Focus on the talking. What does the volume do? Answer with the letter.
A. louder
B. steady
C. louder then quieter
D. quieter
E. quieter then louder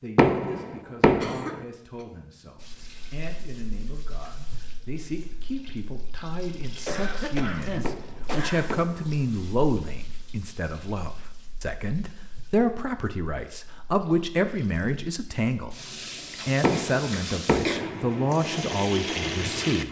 A.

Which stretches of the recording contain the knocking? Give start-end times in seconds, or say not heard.
0.1-1.6, 7.8-9.1, 16.6-17.9.